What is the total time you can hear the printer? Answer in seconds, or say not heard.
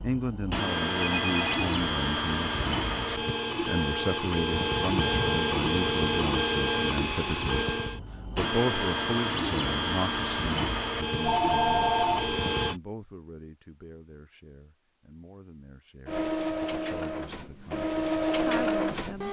16 s.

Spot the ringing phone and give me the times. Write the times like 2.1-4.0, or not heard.
0.9-1.8, 11.2-12.4.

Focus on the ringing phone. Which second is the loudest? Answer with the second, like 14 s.
12 s.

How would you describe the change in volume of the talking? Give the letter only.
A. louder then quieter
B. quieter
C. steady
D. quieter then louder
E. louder
B.